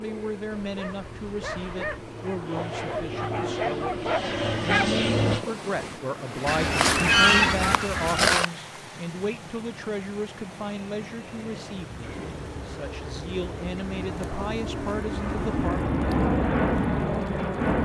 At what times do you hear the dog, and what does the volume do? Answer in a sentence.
You can hear the dog from 0.5 to 5.5 s, getting louder.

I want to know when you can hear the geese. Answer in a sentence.
You can hear the geese from 6.5 to 8.4 s.